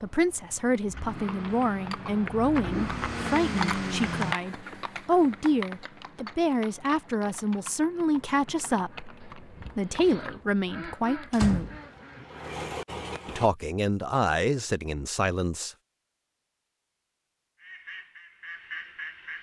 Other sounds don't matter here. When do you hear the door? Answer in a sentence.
You can hear the door from 11.3 to 12.2 s.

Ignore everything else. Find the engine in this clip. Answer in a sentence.
You can hear the engine from 0.0 to 4.3 s and from 11.4 to 13.5 s.